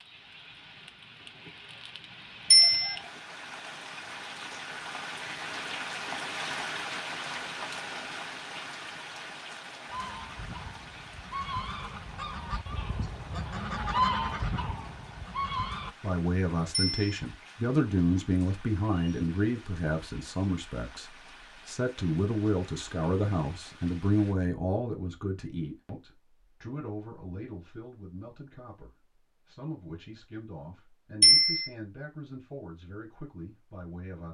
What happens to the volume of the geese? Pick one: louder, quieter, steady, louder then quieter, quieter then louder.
louder then quieter.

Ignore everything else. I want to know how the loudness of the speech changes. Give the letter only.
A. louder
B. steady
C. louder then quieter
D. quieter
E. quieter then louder
D.